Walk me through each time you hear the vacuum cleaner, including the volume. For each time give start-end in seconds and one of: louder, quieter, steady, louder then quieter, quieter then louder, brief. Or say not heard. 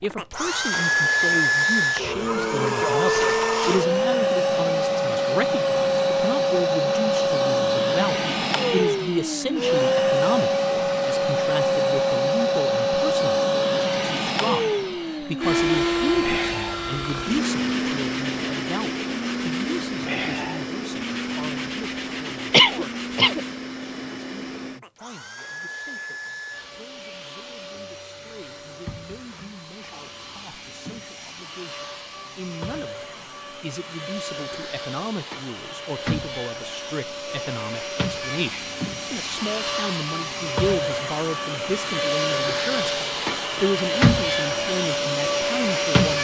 0.0-46.1 quieter then louder.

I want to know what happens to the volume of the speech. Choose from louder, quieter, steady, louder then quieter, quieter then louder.
quieter then louder.